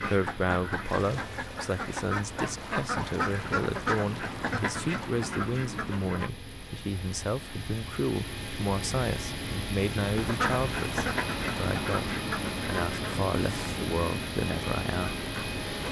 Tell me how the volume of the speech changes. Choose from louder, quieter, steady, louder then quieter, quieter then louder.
steady.